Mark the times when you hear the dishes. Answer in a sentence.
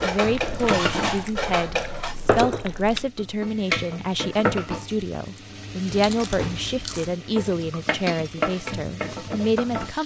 You can hear the dishes from 0.0 to 2.1 s.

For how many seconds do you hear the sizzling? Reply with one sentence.
The sizzling can be heard for 10 seconds in total.